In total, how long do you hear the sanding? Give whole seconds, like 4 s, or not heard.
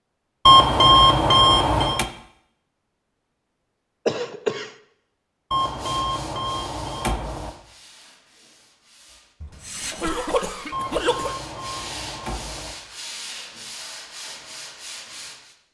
10 s.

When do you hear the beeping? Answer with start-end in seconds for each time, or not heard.
0.5-2.0, 5.5-7.5, 10.7-12.8.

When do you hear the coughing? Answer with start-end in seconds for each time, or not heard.
4.0-4.7, 9.4-11.3.